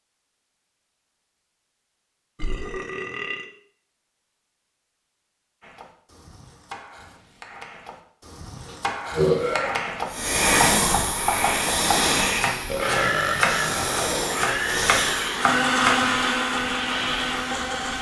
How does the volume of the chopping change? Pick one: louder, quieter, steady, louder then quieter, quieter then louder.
louder.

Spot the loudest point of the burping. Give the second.
9 s.